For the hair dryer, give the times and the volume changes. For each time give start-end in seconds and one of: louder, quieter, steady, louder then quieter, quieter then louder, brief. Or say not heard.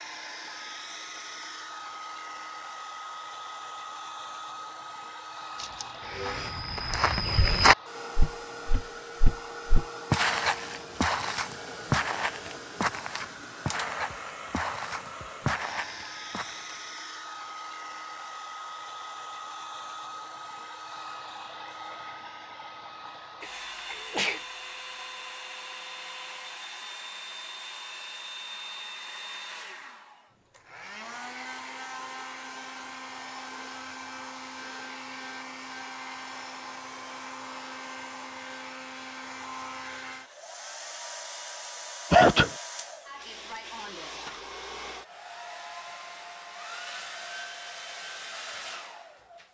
0.0-49.4 steady.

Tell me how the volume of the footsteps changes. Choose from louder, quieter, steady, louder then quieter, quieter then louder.
quieter.